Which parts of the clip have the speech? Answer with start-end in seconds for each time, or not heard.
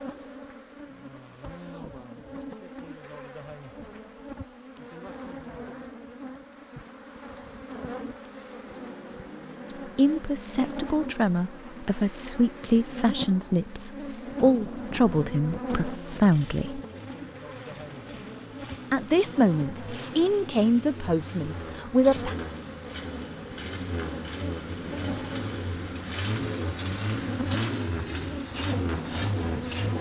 9.9-16.8, 18.9-22.4.